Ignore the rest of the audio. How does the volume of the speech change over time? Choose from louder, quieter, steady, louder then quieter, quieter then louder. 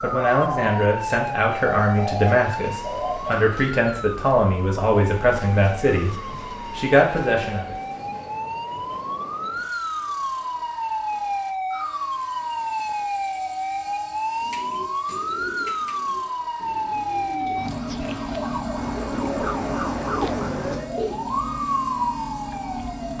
steady.